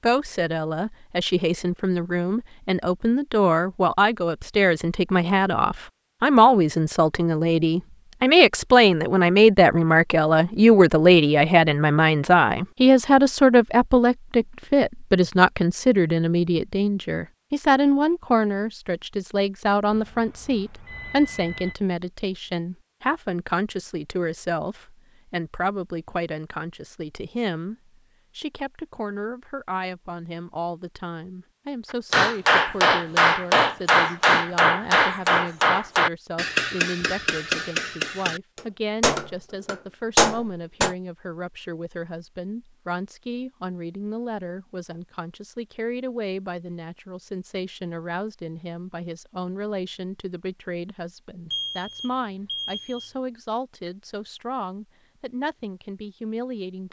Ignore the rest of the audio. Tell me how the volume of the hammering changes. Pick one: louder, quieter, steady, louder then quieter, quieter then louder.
quieter then louder.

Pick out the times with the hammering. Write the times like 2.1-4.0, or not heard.
32.1-41.0.